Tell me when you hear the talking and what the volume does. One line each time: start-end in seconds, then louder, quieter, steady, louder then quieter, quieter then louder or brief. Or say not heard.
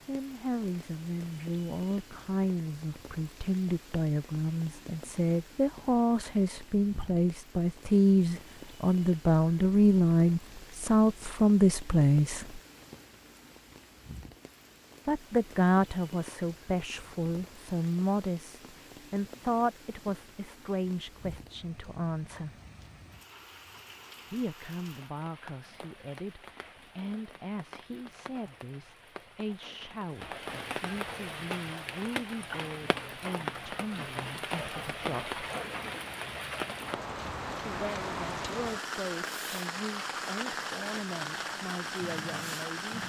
0.1-12.6 louder
15.1-22.6 quieter
24.3-35.4 steady
37.6-43.0 steady.